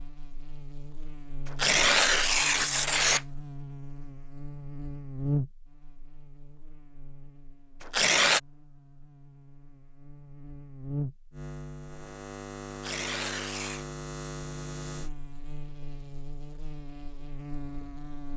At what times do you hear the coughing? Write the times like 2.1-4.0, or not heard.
not heard.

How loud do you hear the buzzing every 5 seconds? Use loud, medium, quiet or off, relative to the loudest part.
medium, loud, loud, medium.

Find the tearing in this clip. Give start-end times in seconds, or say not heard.
1.4-3.2, 7.8-8.4, 12.7-13.8.